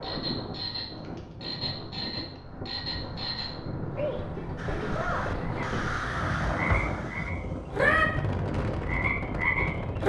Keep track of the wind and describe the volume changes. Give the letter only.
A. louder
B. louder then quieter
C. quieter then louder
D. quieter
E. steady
A.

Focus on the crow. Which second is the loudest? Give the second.
6 s.